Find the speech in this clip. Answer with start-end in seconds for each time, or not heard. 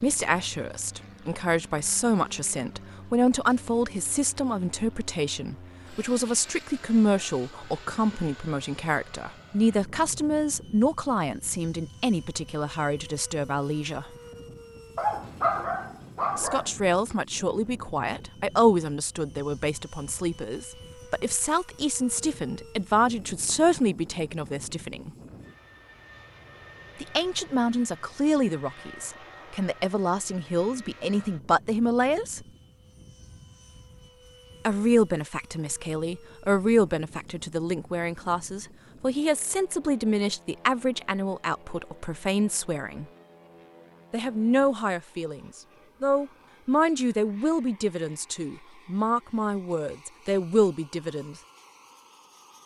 0.0-14.1, 16.4-25.1, 27.0-32.4, 34.6-43.0, 44.1-51.4.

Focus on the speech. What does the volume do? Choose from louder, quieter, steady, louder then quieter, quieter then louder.
steady.